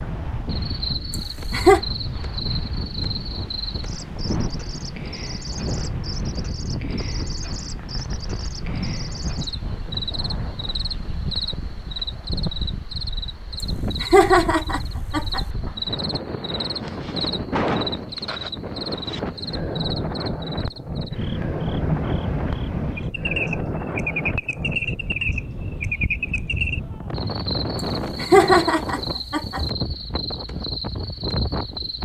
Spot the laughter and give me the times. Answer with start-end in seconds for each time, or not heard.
1.1-1.8, 14.0-15.4, 28.2-29.6.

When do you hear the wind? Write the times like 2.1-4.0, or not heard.
0.0-32.0.